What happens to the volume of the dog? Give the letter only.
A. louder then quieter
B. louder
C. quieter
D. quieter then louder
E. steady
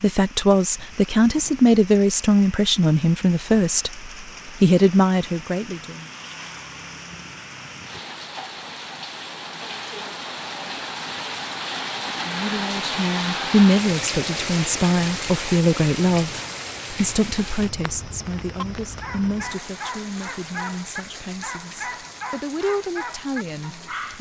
E.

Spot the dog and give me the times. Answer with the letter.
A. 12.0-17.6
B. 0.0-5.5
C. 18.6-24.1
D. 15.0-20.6
C.